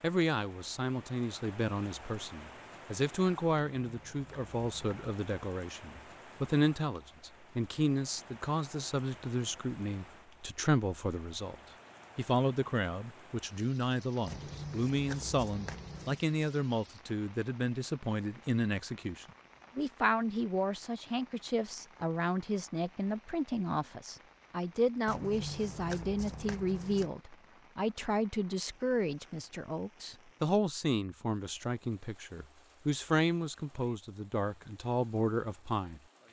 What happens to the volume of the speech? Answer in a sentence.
The loudness of the speech stays about the same.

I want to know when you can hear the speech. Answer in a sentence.
The speech can be heard from 0.0 to 11.6 s and from 12.2 to 36.0 s.